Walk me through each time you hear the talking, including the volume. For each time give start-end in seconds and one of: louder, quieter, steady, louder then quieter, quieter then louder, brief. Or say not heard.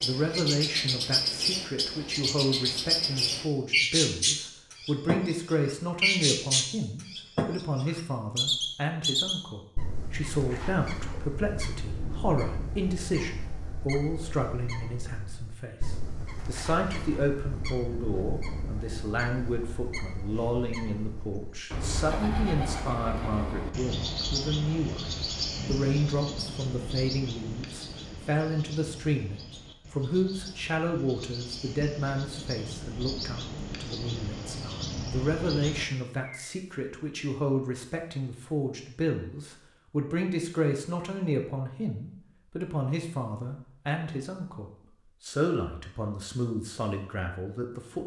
0.0-48.0 steady.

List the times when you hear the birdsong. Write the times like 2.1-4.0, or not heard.
0.0-36.5.